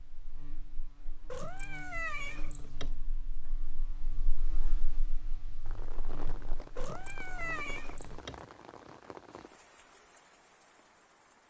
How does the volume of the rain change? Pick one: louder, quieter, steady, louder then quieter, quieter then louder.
quieter.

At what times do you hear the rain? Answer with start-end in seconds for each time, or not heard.
5.7-11.4.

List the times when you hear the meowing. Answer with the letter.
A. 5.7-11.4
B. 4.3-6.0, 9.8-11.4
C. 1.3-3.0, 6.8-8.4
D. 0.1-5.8
C.